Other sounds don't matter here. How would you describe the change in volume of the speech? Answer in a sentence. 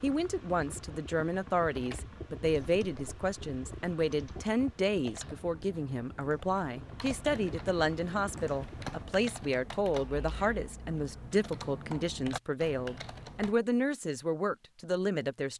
The volume of the speech stays about the same.